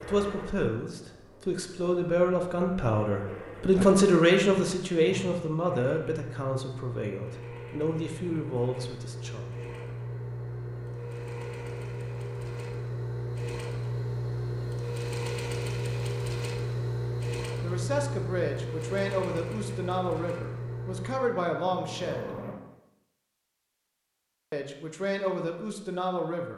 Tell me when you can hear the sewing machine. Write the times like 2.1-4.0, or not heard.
0.0-22.6.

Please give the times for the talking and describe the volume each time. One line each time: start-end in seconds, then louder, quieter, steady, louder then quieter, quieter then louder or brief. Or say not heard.
0.0-9.4 louder then quieter
17.6-22.3 quieter then louder
24.5-26.5 brief.